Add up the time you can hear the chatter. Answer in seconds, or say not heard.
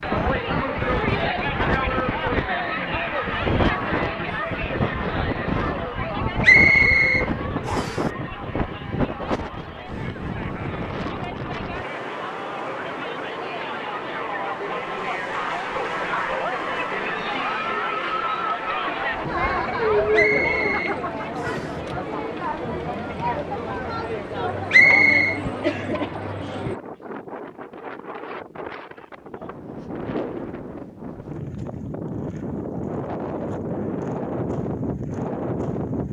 27 s.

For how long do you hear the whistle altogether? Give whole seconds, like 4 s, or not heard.
4 s.